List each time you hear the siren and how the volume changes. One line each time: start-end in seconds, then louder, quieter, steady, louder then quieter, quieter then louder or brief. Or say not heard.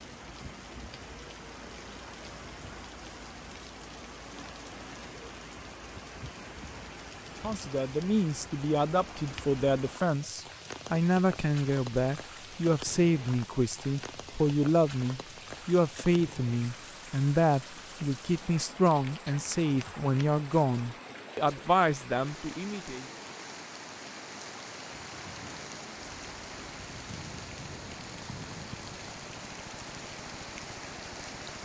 not heard.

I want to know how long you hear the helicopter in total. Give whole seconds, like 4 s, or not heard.
6 s.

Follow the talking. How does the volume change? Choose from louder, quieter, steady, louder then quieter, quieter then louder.
steady.